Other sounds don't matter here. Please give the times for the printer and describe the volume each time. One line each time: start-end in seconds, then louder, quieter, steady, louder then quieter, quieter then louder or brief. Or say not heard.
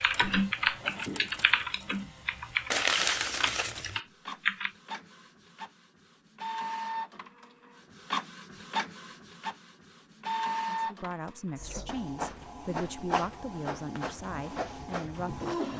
0.0-15.7 louder.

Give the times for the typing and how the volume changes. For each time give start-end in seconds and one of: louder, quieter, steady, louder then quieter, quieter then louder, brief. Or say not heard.
0.0-4.7 quieter.